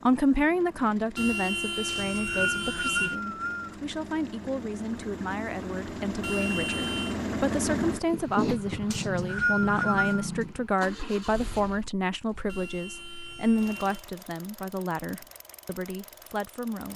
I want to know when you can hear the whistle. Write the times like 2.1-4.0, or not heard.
1.9-3.8, 8.9-10.2.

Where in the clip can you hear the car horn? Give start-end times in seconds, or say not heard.
1.1-3.1, 6.2-7.2, 12.4-14.1.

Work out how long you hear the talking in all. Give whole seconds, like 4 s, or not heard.
17 s.